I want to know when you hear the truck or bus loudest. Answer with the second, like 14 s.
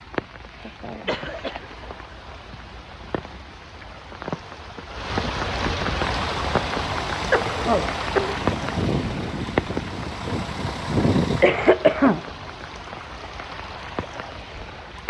11 s.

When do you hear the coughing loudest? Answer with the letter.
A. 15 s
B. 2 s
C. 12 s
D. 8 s
C.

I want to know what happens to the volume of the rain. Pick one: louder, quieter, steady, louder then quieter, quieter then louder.
louder then quieter.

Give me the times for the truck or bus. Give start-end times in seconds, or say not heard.
6.2-11.5.